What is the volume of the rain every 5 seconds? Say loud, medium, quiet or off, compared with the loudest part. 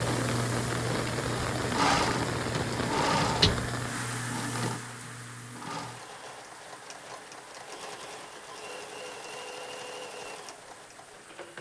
loud, quiet, quiet.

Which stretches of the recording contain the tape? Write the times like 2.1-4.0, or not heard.
not heard.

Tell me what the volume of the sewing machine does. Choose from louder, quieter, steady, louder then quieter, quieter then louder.
quieter.